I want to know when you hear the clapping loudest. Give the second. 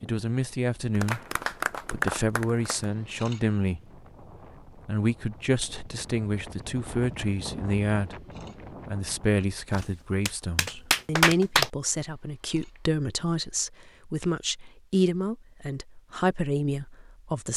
11 s.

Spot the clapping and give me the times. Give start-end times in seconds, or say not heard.
0.9-2.9, 9.7-11.7.